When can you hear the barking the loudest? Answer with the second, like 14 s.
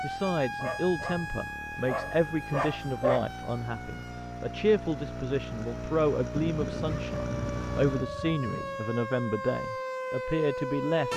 3 s.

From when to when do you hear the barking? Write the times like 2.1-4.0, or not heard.
0.6-3.2, 6.3-8.9.